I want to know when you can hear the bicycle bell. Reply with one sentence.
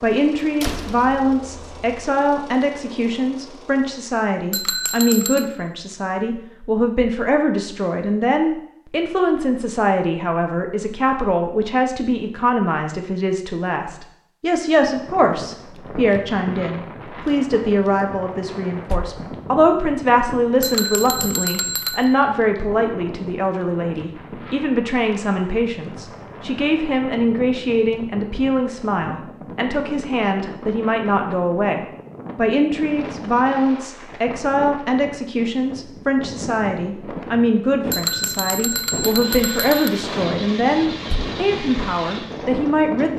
You can hear the bicycle bell from 4.5 to 5.5 s, from 20.6 to 22.1 s and from 37.9 to 39.9 s.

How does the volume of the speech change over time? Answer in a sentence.
The volume of the speech stays about the same.